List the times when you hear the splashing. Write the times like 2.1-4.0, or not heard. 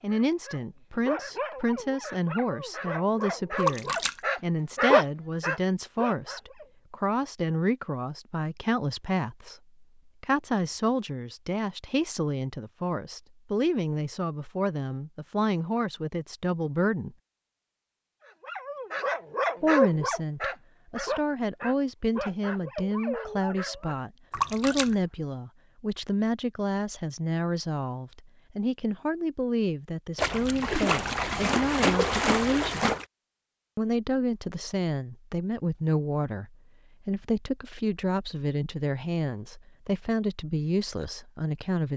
3.5-4.2, 24.3-24.9, 30.1-33.0.